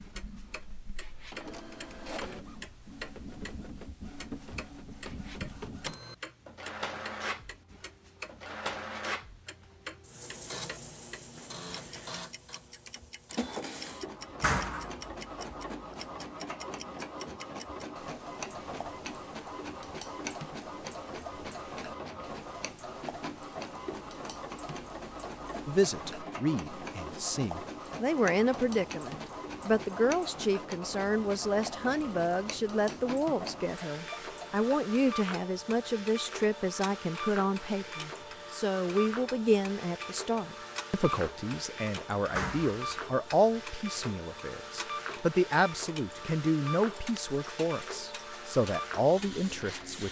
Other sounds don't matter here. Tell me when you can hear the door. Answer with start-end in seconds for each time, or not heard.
14.4-15.0, 42.3-42.9.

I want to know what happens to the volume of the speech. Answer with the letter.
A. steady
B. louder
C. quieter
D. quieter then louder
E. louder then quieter
A.